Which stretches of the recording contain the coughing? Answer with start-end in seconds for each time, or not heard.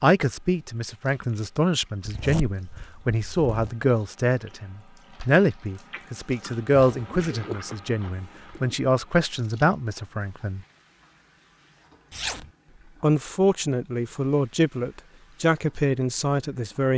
not heard.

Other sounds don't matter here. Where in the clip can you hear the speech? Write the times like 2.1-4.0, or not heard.
0.0-10.6, 13.0-16.9.